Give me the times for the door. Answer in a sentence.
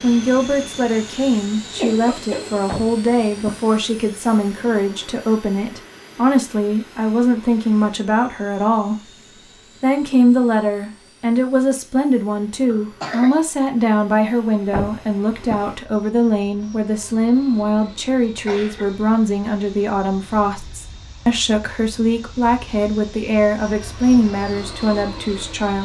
You can hear the door from 2.6 to 3.7 s and from 14.7 to 15.8 s.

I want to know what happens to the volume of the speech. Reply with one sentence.
The volume of the speech stays about the same.